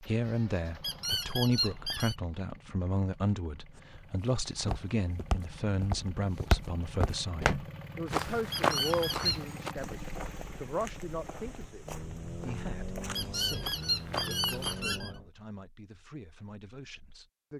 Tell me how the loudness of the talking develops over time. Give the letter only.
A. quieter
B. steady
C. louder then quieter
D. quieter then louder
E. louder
A.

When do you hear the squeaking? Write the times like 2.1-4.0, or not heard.
0.8-2.1, 8.5-9.4, 13.2-15.1.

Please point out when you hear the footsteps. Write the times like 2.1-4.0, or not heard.
3.8-14.8.